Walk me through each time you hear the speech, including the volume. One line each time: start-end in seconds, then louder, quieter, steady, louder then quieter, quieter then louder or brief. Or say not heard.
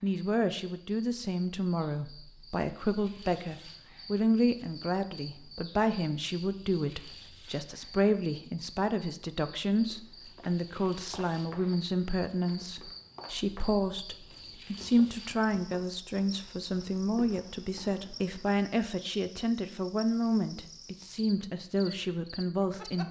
0.0-23.0 steady.